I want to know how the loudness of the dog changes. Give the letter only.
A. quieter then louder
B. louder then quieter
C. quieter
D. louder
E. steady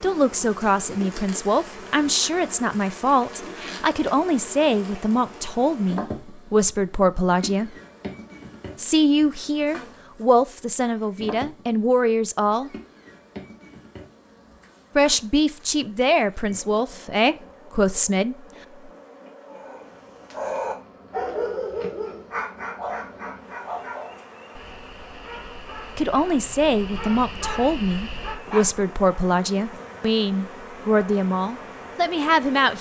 A.